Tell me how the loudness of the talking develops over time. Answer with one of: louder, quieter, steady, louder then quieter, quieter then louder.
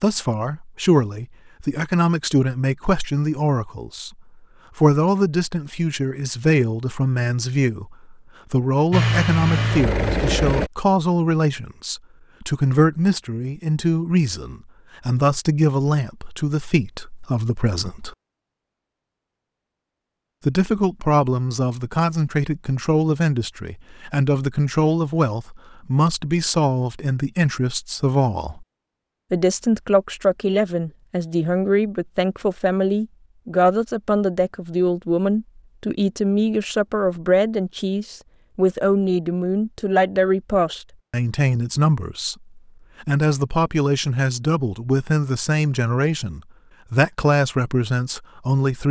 steady.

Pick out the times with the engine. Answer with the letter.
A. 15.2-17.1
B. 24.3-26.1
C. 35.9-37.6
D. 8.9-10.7
D.